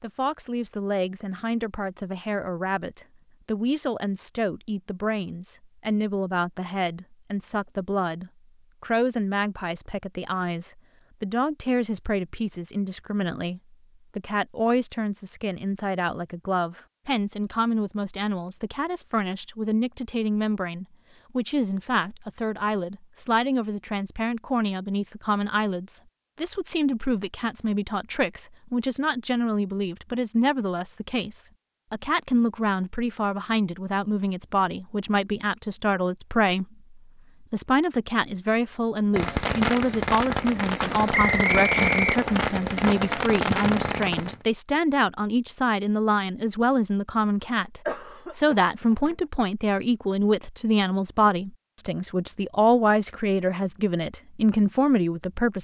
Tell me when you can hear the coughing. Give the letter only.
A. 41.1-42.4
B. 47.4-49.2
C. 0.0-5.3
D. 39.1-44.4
B.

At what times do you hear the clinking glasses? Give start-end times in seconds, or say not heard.
not heard.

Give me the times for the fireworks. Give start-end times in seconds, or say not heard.
39.1-44.4.